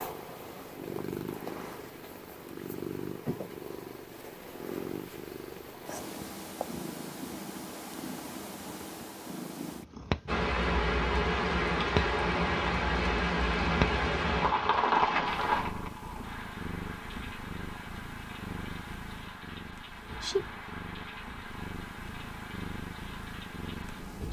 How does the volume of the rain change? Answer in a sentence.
The loudness of the rain goes down.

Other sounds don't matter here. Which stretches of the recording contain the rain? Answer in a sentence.
The rain can be heard from 10.2 to 24.2 s.